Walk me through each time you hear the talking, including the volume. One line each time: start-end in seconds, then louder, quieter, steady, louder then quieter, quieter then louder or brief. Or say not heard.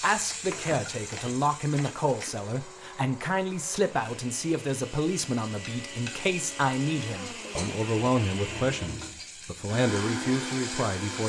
0.0-11.2 steady.